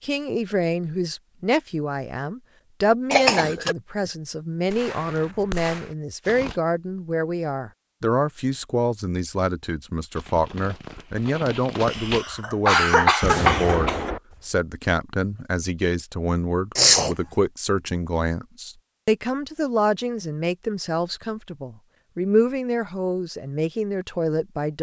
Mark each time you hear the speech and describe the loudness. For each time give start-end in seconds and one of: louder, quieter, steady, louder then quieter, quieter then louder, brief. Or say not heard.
0.0-24.7 steady.